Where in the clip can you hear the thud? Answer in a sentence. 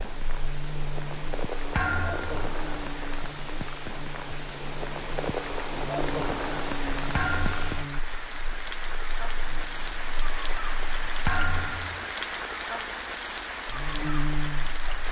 You can hear the thud from 1.8 to 2.4 s, from 7.2 to 7.8 s and from 11.2 to 12.1 s.